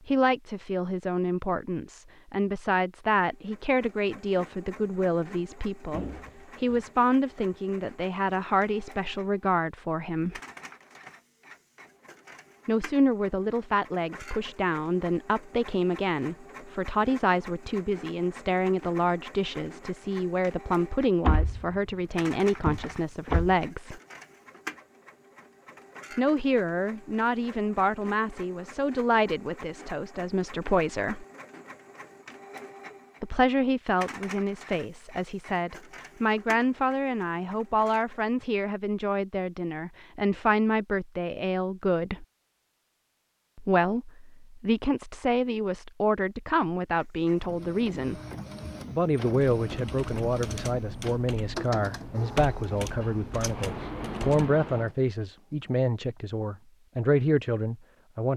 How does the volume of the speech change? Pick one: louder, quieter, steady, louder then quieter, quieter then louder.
steady.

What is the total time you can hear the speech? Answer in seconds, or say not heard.
50 s.